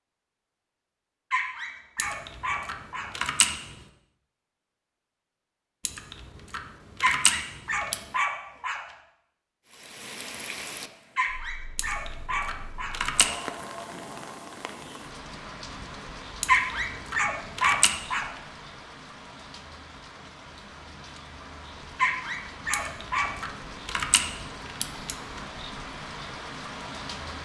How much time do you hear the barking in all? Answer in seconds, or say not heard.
9 s.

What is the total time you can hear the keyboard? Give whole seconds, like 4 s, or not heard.
10 s.